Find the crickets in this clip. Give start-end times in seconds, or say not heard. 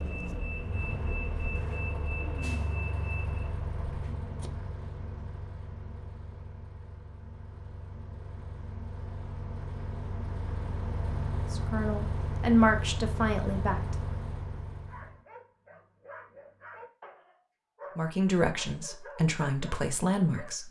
not heard.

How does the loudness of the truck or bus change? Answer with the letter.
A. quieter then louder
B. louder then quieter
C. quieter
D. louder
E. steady
A.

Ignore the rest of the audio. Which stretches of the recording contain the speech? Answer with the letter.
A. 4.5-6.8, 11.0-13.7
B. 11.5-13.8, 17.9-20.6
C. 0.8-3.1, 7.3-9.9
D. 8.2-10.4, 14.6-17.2
B.